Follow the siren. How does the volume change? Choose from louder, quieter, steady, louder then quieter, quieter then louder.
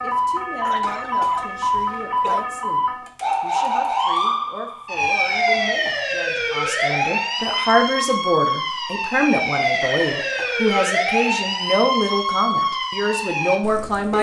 steady.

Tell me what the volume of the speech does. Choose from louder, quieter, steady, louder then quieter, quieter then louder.
louder.